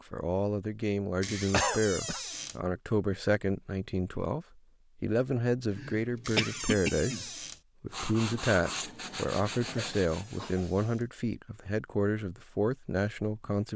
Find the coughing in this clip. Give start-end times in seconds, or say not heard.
1.5-2.2, 5.7-7.2, 9.4-10.7.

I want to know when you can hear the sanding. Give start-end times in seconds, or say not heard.
7.9-10.9.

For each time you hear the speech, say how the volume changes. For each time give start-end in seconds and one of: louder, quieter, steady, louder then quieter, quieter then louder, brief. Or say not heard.
0.0-13.7 steady.